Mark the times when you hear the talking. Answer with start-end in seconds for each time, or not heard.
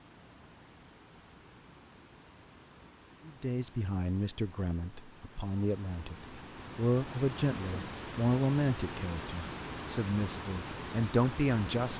3.2-6.2, 6.8-11.9.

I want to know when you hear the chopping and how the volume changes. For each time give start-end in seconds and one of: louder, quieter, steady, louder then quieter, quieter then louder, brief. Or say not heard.
not heard.